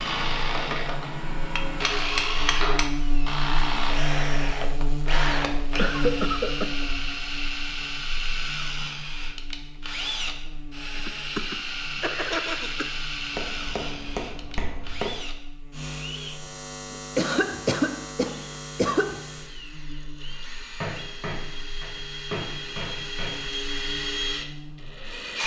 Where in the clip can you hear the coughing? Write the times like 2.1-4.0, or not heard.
5.8-6.8, 10.9-12.9, 17.1-19.2.